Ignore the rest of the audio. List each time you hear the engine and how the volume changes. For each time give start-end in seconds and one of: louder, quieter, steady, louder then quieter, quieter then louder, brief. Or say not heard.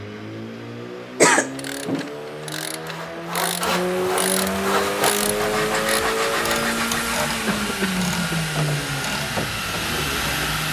0.0-10.6 louder.